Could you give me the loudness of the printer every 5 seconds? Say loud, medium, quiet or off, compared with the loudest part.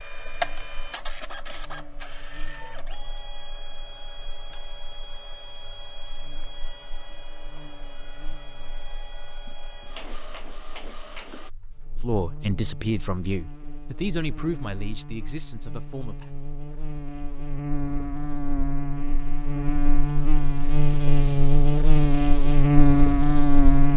loud, medium, medium, off, off.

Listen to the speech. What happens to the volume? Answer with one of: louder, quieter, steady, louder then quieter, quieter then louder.
quieter.